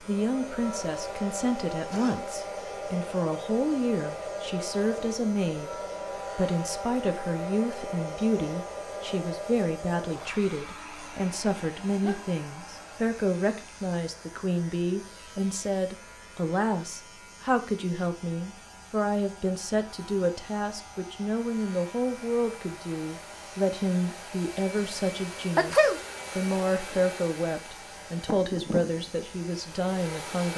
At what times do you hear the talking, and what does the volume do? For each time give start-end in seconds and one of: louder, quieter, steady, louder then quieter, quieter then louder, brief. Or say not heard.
0.0-30.5 steady.